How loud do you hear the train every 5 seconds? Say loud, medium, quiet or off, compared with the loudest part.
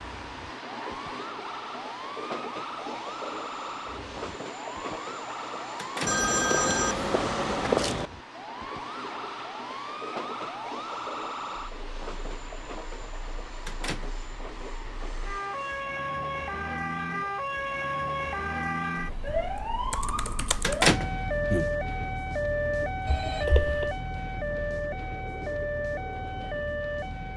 loud, loud, loud, medium, medium, medium.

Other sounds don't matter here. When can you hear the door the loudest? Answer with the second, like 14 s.
21 s.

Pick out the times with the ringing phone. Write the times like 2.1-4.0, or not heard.
6.0-8.1, 23.1-23.9.